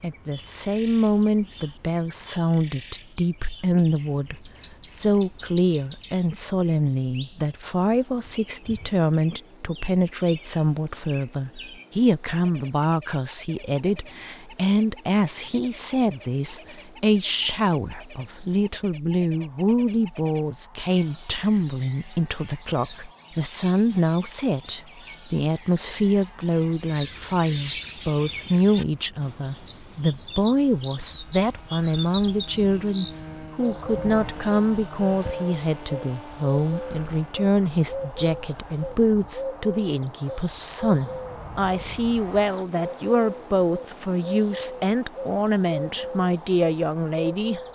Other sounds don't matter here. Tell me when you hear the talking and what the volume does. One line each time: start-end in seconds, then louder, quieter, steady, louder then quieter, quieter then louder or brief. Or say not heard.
0.0-47.6 steady.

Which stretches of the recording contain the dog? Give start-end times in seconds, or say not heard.
not heard.